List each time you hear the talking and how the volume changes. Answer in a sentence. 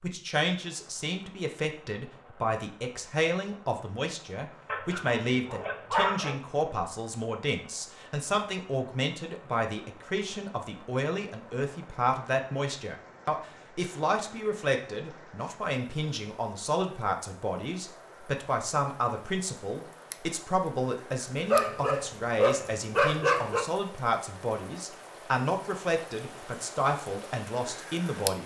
The talking can be heard from 0.0 to 28.4 s, at a steady volume.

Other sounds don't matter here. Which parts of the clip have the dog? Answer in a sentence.
You can hear the dog from 4.7 to 6.3 s and from 21.4 to 23.6 s.